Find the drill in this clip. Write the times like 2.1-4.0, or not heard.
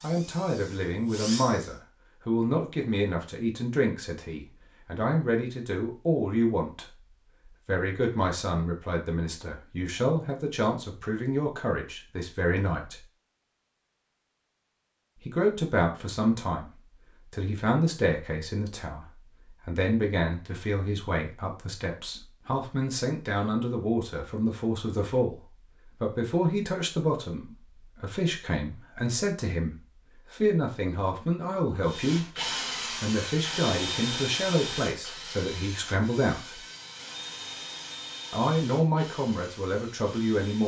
0.0-1.8, 31.9-40.6.